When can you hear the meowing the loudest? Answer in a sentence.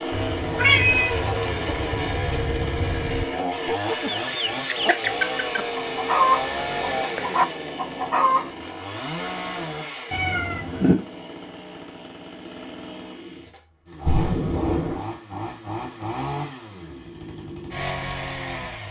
The volume of the meowing peaks at 1 second.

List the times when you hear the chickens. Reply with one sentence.
The chickens can be heard from 0.1 to 8.5 s.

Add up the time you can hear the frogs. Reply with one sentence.
The frogs can't be heard in this clip.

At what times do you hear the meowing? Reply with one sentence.
You can hear the meowing from 0.6 to 1.2 s, from 10.1 to 10.9 s and from 14.1 to 15.1 s.